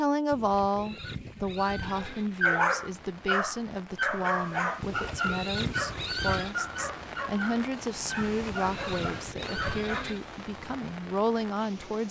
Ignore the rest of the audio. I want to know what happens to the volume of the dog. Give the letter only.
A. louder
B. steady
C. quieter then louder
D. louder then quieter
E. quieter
E.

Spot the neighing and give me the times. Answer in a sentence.
You can hear the neighing from 0.3 to 2.3 s, from 4.8 to 6.5 s and from 8.2 to 10.2 s.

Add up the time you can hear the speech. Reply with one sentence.
The speech can be heard for 12 seconds in total.